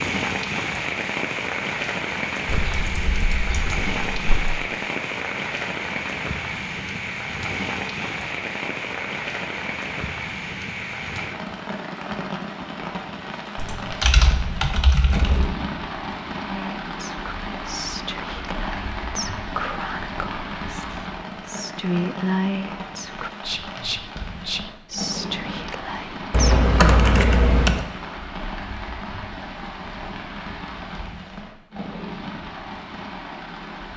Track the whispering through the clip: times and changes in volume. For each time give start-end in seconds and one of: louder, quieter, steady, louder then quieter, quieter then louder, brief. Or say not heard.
16.4-27.2 louder then quieter.